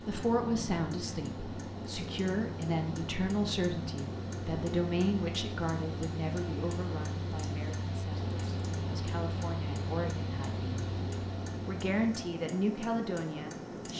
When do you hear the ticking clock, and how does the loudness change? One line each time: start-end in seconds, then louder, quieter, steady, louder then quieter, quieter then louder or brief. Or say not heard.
0.0-13.9 steady.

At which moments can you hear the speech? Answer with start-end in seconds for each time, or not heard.
0.0-10.7, 11.7-13.9.